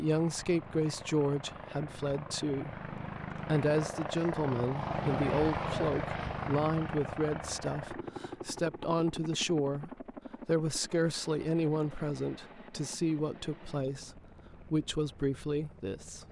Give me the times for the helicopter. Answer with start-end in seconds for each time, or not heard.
0.0-16.2.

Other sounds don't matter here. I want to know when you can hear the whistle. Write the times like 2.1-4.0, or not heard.
not heard.